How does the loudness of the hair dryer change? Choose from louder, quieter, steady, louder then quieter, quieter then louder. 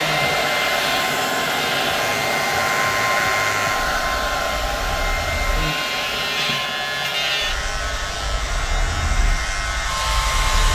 quieter.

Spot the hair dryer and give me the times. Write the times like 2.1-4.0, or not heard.
0.0-10.7.